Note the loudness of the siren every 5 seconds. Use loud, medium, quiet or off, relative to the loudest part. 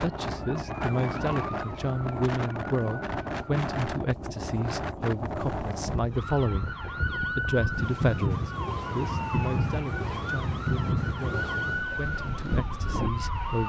medium, loud, loud.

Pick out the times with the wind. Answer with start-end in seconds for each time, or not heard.
0.0-13.6.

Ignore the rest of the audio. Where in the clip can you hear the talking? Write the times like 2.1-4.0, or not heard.
0.0-6.8, 7.3-13.6.